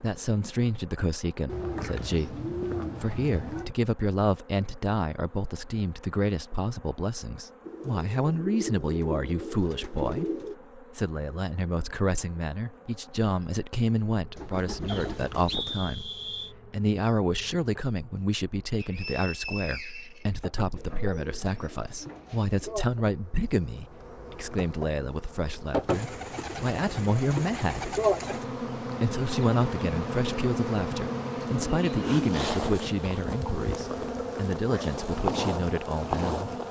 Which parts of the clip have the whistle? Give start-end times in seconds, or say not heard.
14.8-16.6, 18.8-20.8.